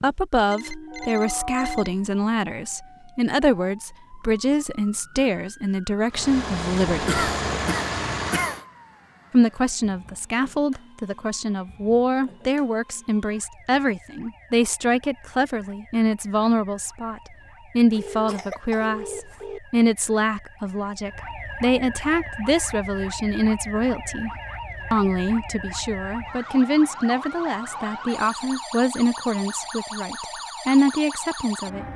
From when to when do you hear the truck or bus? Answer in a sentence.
You can hear the truck or bus from 6.1 to 8.7 s.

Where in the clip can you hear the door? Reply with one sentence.
You can't hear the door here.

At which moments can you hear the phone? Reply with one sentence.
The phone can be heard from 0.5 to 1.9 s and from 17.9 to 19.6 s.